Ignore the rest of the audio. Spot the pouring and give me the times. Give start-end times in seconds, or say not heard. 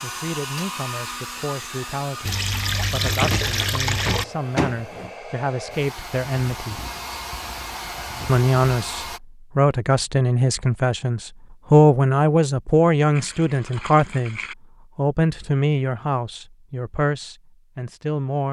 2.2-4.2, 13.2-14.6.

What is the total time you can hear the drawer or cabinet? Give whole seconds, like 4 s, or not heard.
2 s.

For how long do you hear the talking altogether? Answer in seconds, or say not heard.
17 s.